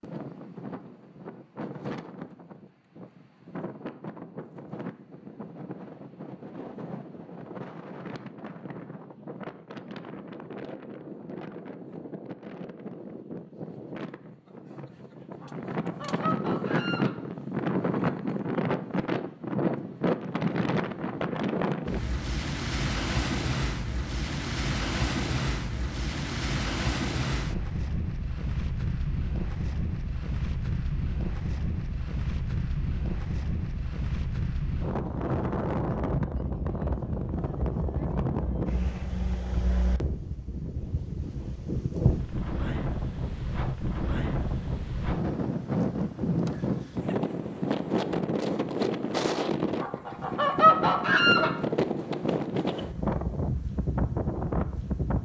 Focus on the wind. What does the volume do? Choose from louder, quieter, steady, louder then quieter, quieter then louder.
louder.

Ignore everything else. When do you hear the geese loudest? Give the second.
51 s.